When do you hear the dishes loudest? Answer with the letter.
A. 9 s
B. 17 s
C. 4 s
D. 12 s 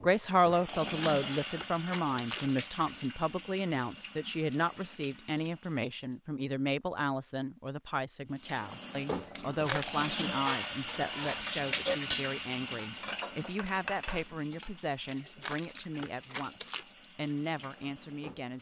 D.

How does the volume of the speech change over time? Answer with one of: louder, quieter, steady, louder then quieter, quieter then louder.
quieter.